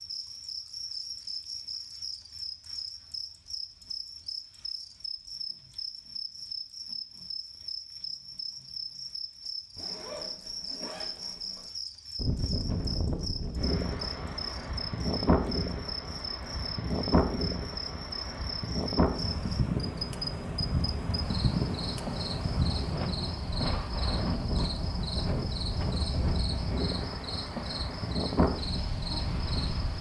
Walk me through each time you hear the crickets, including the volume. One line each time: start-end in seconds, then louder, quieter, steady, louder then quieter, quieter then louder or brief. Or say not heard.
0.0-29.9 steady.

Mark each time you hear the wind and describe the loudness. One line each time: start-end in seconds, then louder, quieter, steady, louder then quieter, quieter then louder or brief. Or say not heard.
12.2-29.9 steady.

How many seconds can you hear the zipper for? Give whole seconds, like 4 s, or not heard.
2 s.